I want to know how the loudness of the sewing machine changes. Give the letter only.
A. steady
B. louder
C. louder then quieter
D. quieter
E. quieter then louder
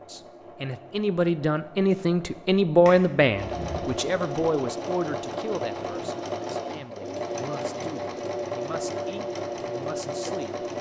B.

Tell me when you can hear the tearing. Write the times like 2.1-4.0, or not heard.
not heard.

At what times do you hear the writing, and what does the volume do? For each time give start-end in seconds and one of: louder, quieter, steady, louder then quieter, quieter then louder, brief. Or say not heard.
not heard.